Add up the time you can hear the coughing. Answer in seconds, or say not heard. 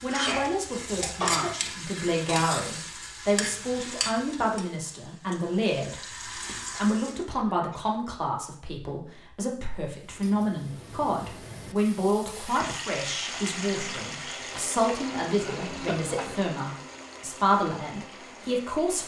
4 s.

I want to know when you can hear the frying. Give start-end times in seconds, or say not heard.
0.0-7.2, 9.8-19.0.